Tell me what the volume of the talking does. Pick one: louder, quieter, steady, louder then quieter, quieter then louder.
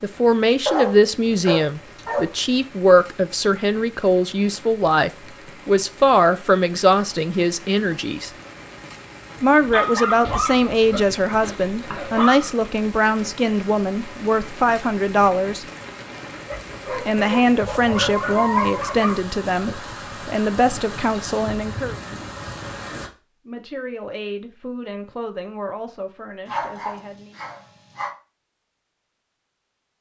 quieter.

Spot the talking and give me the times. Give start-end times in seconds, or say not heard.
0.0-8.3, 9.4-15.7, 16.9-21.9, 23.4-27.4.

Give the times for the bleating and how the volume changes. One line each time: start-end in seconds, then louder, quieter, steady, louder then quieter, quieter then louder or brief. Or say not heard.
not heard.